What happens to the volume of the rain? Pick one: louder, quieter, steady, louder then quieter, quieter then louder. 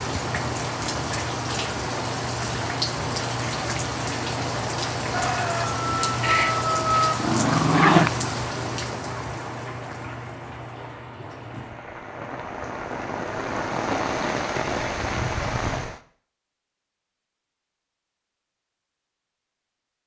quieter then louder.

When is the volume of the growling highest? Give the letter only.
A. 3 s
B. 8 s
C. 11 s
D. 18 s
B.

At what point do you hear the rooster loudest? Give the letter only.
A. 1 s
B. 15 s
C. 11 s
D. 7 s
D.